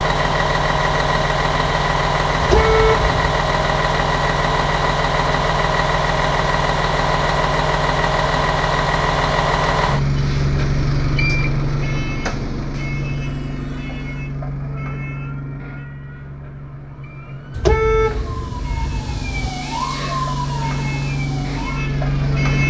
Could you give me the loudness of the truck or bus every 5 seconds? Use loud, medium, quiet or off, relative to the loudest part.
loud, loud, loud, quiet, loud.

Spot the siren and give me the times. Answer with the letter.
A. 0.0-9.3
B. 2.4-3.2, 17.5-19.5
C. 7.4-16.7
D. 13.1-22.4
D.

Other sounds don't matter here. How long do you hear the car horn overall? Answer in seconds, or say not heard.
3 s.